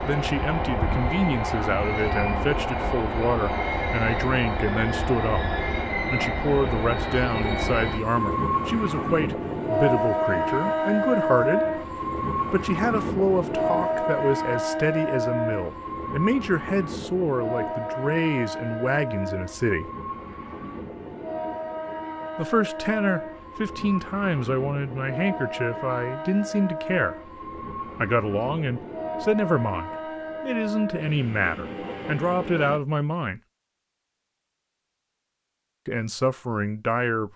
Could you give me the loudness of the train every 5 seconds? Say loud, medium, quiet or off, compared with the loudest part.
loud, loud, loud, medium, medium, medium, medium, off.